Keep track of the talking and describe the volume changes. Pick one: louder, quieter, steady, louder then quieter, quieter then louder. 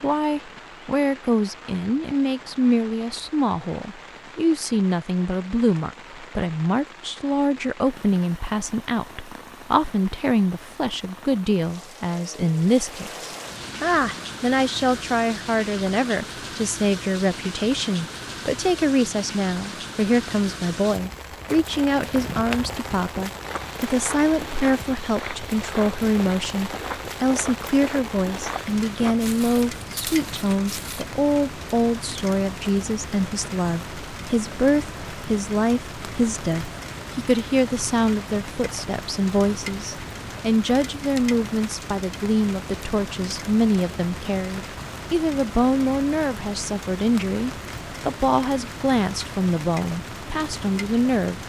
steady.